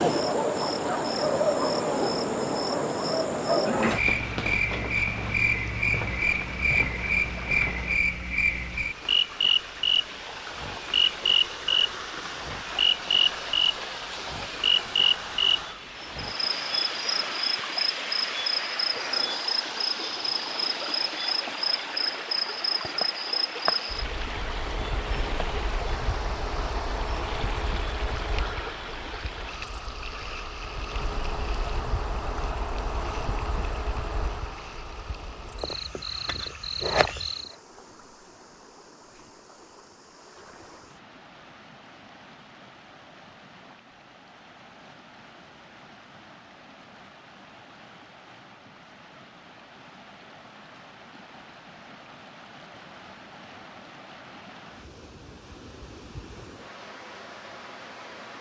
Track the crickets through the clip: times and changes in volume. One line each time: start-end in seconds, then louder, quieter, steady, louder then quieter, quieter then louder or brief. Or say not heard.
0.0-37.5 quieter.